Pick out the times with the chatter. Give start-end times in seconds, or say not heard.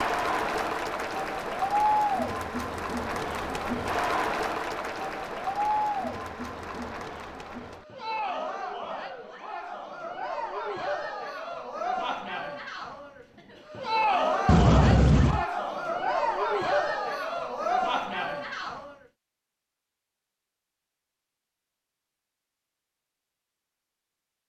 0.0-18.9.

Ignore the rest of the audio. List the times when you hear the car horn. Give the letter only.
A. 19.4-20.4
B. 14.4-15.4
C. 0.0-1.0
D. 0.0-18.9
B.